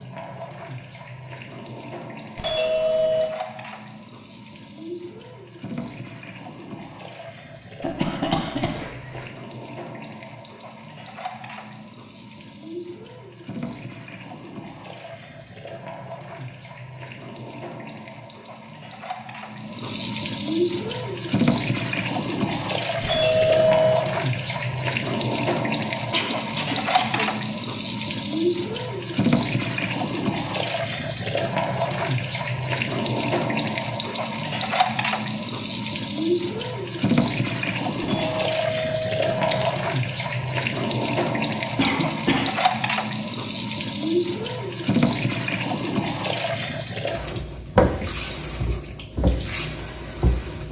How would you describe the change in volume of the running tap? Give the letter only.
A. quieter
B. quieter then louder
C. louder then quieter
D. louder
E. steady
D.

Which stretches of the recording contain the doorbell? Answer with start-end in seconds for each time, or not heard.
2.4-3.3, 23.0-24.1, 38.0-39.7.